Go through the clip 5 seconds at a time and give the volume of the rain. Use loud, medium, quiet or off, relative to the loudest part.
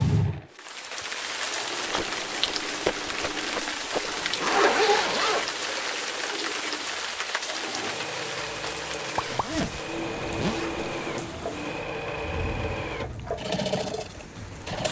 loud, loud, medium.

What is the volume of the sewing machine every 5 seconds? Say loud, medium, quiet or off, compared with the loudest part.
medium, medium, loud.